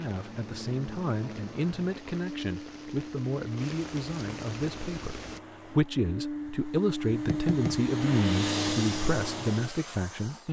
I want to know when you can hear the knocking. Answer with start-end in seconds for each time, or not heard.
7.1-8.0.